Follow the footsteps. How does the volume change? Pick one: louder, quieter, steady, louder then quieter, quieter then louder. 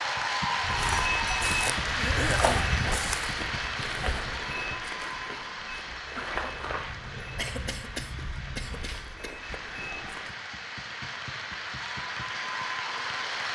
quieter.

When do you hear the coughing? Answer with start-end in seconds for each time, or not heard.
1.9-2.8, 7.3-9.3.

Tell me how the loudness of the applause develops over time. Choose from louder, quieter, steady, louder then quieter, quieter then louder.
quieter then louder.